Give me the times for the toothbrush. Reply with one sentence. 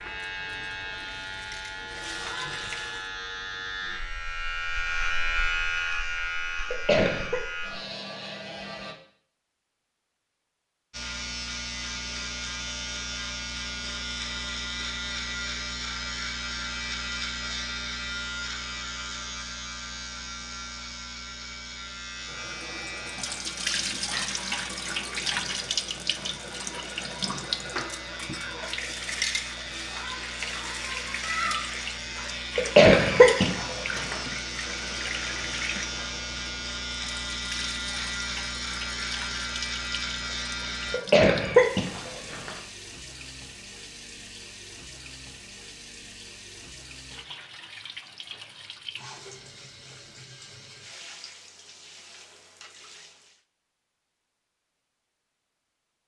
You can't hear the toothbrush here.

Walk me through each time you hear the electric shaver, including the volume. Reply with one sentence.
You can hear the electric shaver from 0.0 to 8.9 s, getting louder then quieter; and from 10.9 to 41.0 s, getting quieter then louder.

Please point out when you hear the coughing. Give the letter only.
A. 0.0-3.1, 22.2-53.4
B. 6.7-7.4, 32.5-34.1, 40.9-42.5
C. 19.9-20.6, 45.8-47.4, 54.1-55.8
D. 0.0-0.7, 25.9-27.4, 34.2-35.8
B.